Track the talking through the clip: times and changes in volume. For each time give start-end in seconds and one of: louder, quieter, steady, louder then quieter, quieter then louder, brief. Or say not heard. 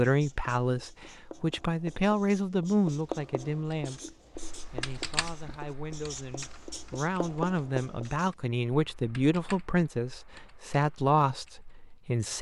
0.0-12.3 quieter then louder.